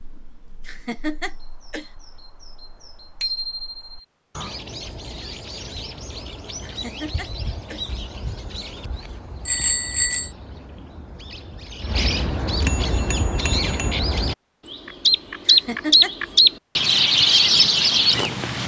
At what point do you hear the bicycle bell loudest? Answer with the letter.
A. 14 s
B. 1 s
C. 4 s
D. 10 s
D.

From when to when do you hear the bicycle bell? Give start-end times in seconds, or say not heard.
3.2-3.9, 9.4-10.3, 12.7-13.9.